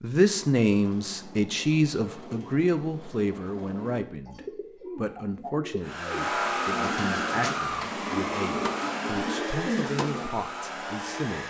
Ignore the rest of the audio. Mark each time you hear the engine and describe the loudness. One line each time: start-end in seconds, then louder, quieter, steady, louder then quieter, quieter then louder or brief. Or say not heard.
5.8-11.4 quieter.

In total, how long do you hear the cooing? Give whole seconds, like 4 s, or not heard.
10 s.